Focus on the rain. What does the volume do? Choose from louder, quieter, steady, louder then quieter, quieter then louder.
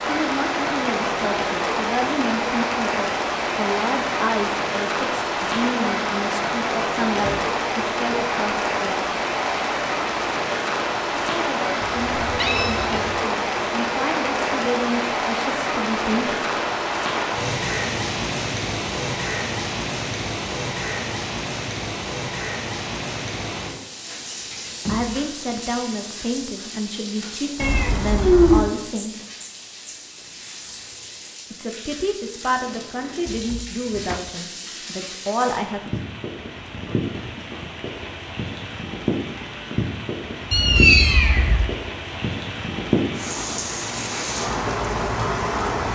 quieter then louder.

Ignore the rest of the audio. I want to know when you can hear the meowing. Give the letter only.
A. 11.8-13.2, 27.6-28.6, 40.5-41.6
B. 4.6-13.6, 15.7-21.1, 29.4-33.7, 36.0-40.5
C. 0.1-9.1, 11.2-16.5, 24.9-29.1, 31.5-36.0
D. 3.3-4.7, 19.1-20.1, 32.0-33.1
A.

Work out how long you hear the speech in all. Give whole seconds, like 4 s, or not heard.
23 s.